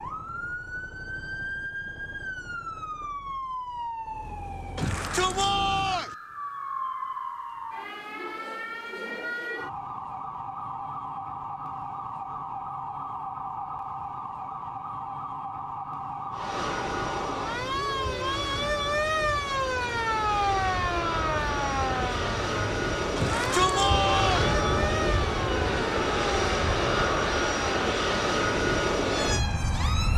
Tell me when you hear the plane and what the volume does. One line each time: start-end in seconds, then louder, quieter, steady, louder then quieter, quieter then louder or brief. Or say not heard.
16.3-30.1 louder.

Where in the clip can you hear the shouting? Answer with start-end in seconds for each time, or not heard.
4.8-6.2, 23.1-24.6.